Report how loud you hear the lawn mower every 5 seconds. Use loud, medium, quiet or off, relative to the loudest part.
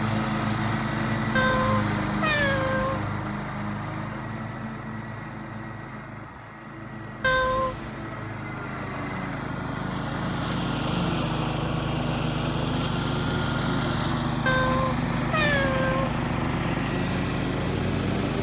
loud, medium, loud, loud.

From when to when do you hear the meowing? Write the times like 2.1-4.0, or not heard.
1.4-3.1, 7.2-8.2, 14.4-16.1.